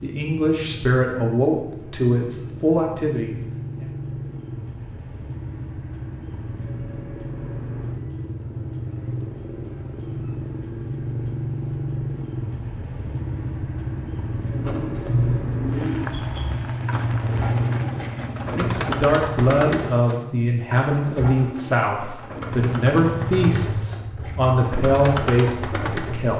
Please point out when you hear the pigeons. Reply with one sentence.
You can hear the pigeons from 14.6 to 26.3 s.